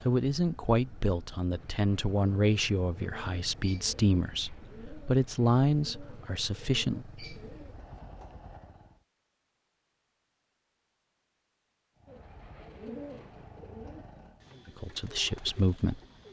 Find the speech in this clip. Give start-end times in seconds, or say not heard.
0.1-7.0, 14.7-16.0.